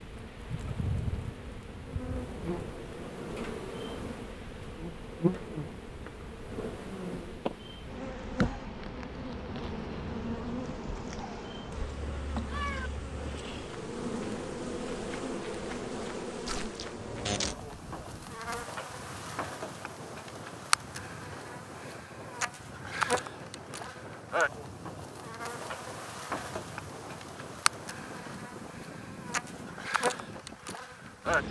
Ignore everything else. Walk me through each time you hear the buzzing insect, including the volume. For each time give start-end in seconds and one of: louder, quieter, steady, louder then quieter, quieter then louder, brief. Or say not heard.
0.0-31.4 steady.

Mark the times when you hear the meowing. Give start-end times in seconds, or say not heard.
12.0-12.9.